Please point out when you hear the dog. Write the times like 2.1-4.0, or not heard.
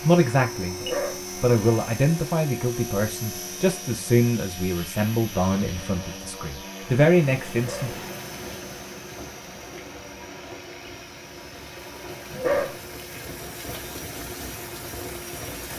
0.8-1.2, 7.5-8.0, 12.3-12.8.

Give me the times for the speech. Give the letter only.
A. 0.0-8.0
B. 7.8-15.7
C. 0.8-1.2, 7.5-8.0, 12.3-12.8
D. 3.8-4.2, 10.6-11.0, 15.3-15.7
A.